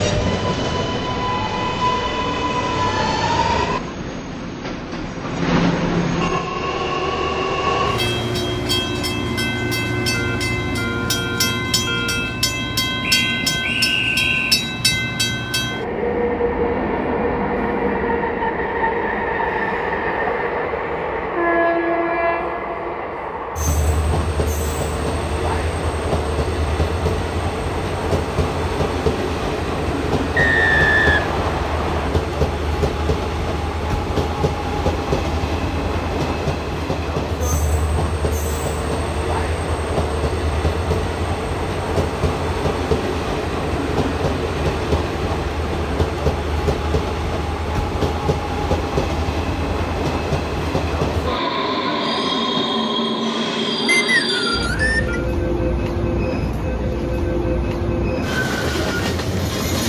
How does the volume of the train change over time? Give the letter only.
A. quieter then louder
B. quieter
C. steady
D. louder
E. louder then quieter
C.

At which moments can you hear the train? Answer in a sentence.
You can hear the train from 0.0 to 59.8 s.